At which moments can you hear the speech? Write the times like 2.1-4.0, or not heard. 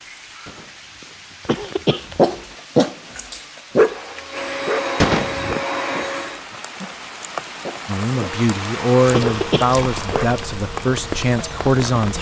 7.8-12.1.